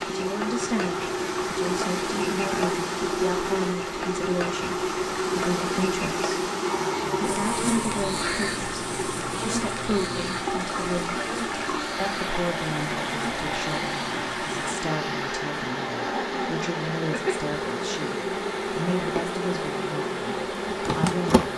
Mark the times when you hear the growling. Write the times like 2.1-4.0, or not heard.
6.7-8.7, 15.8-17.4.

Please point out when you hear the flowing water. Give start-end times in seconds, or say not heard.
0.0-21.5.